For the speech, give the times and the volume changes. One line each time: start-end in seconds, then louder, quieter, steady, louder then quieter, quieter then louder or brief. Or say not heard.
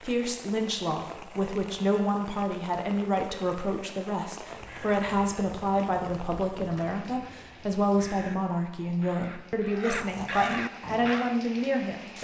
0.0-12.1 steady.